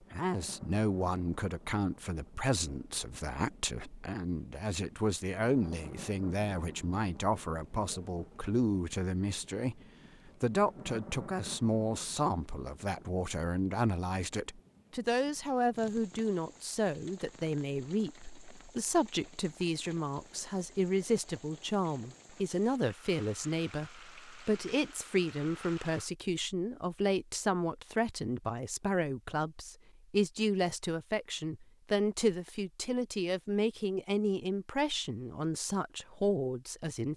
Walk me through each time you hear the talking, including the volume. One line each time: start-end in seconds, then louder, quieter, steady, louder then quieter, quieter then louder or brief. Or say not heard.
0.1-37.1 steady.